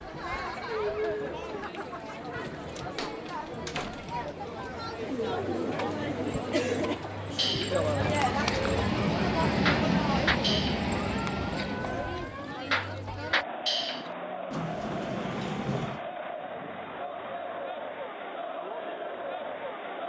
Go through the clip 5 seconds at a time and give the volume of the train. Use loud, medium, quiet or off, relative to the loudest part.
off, loud, loud, off.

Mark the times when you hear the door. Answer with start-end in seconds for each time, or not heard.
3.0-4.2, 8.2-8.7, 14.5-16.0.